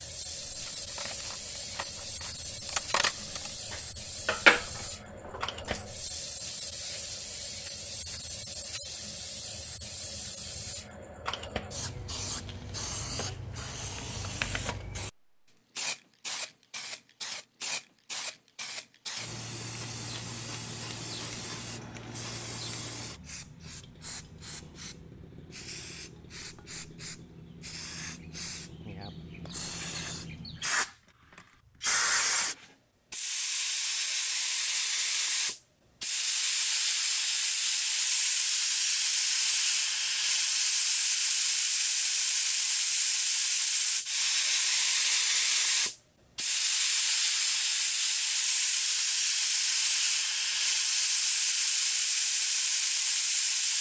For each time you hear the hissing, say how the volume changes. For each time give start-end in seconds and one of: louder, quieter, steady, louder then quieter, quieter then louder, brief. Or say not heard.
0.0-53.7 louder.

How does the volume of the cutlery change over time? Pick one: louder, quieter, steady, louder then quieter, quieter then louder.
louder then quieter.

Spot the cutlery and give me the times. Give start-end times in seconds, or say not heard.
0.5-5.8.